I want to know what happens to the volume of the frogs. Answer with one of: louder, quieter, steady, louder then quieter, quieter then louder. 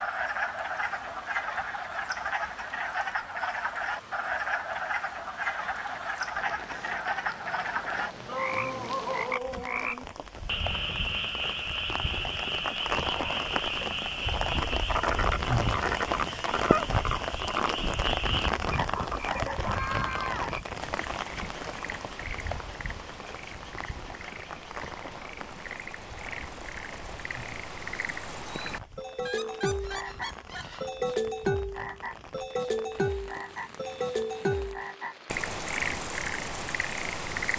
quieter then louder.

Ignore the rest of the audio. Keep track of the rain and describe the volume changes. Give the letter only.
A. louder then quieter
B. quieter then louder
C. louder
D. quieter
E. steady
A.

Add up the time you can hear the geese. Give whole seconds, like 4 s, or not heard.
2 s.